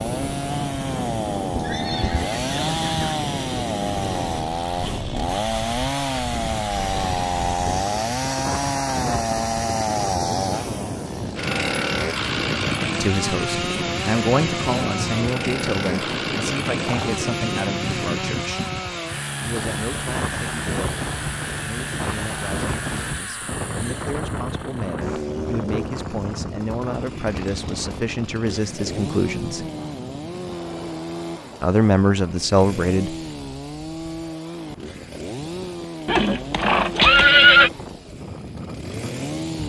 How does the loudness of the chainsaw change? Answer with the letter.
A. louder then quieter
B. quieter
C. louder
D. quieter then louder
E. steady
B.